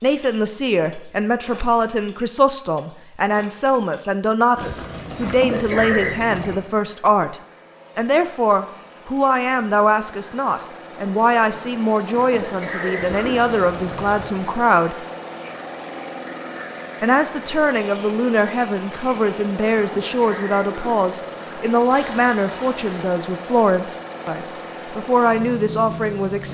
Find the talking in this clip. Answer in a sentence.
You can hear the talking from 0.0 to 7.3 s, from 8.0 to 14.9 s and from 17.0 to 26.4 s.